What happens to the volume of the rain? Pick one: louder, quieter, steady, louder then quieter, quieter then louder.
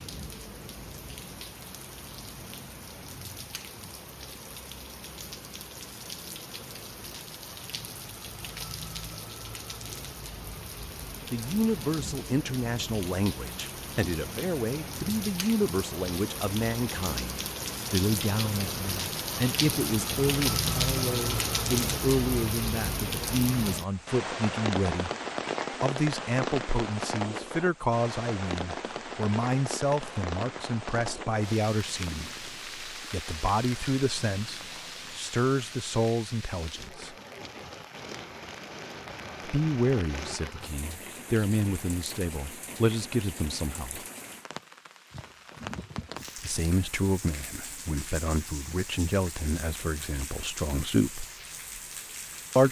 louder then quieter.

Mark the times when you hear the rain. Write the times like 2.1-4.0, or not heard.
0.0-52.6.